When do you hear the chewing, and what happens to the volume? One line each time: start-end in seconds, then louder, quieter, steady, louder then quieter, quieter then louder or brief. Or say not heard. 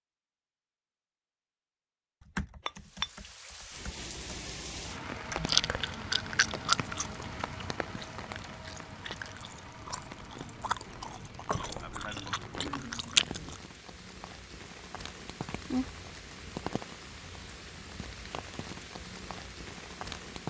5.3-13.6 quieter then louder.